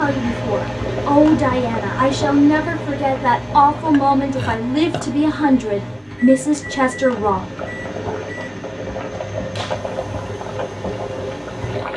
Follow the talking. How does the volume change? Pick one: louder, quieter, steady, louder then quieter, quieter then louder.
steady.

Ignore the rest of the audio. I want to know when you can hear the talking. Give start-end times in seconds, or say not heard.
0.0-7.4.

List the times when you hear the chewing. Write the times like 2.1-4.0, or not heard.
not heard.